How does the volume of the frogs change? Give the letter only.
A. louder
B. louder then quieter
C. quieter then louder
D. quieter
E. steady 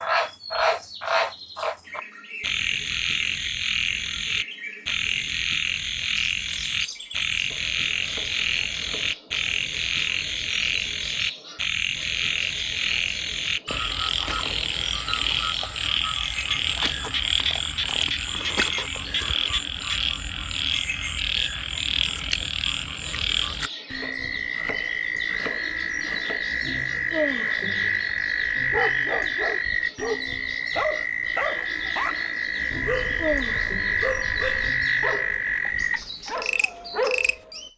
E.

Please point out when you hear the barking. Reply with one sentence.
The barking can be heard from 28.7 to 37.6 s.